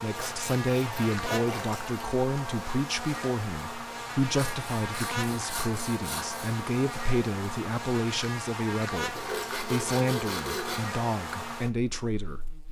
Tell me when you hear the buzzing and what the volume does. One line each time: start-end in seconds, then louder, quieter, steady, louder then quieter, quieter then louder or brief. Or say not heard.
0.0-12.6 steady.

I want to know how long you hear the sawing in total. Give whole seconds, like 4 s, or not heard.
6 s.